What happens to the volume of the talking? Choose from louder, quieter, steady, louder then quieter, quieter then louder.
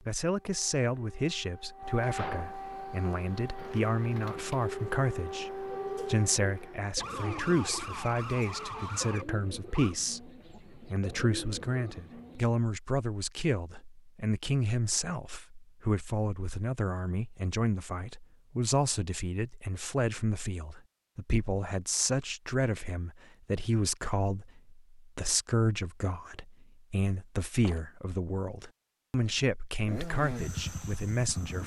steady.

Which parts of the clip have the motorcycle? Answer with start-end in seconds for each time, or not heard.
29.9-31.6.